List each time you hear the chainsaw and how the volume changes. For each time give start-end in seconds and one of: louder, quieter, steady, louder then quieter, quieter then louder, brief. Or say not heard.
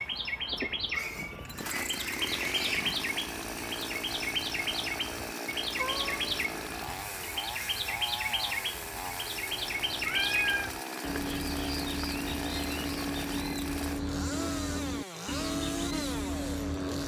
0.0-17.0 steady.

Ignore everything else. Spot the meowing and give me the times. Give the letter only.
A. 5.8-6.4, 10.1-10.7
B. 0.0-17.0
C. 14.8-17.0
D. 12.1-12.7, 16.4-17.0
A.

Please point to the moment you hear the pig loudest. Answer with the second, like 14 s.
3 s.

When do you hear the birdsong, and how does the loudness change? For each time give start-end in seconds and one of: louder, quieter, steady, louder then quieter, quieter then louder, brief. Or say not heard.
0.0-17.0 steady.